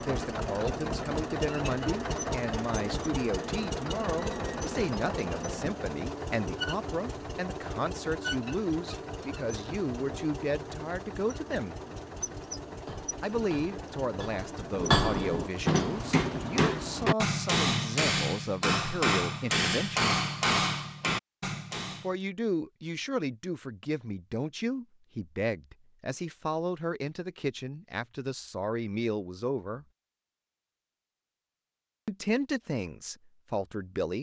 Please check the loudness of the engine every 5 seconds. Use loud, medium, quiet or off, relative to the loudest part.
loud, loud, medium, medium, off, off, off.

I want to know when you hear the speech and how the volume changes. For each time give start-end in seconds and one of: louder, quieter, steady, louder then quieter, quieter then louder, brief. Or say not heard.
0.0-11.8 steady
13.2-20.1 steady
22.0-29.9 steady
32.0-34.1 brief.